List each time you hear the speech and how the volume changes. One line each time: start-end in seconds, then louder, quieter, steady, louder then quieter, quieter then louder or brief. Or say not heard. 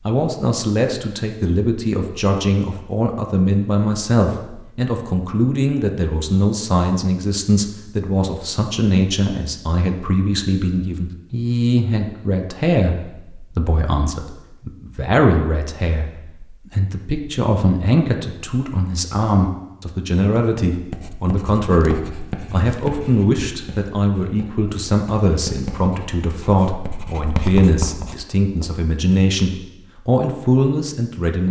0.1-31.4 steady.